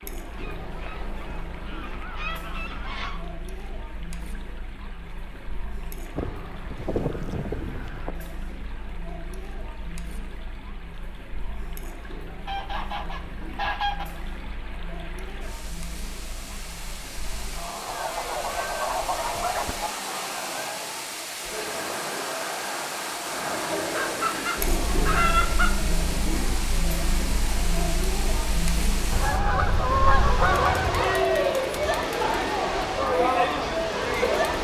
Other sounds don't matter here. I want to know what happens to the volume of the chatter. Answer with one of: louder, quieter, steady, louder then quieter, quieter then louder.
louder.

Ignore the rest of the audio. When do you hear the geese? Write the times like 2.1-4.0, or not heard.
0.3-3.2, 6.2-8.2, 12.4-14.1, 17.9-19.9, 23.9-25.9, 29.1-31.2.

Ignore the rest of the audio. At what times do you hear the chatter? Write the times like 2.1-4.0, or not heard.
0.0-34.5.